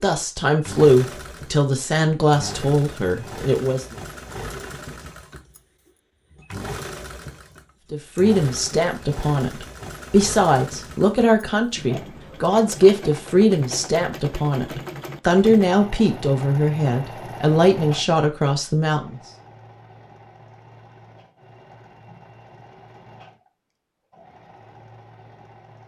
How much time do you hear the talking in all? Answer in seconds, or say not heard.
15 s.